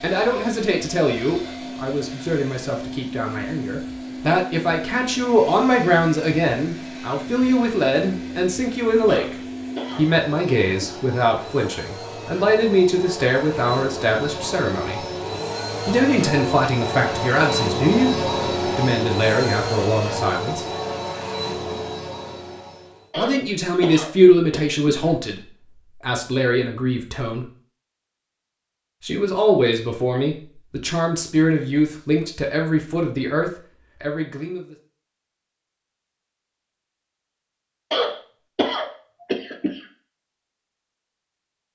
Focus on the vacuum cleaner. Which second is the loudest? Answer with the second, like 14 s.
18 s.